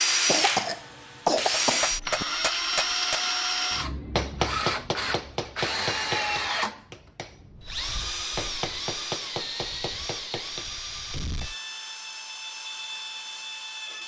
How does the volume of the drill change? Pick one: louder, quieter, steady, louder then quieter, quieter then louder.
quieter.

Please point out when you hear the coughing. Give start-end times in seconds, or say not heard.
0.2-2.2.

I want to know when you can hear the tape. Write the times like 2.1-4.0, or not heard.
not heard.